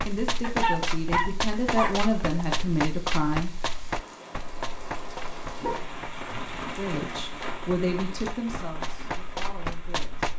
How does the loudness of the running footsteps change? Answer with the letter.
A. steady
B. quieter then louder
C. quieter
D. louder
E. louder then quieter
B.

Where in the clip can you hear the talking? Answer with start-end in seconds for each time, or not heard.
0.1-3.5, 6.8-10.3.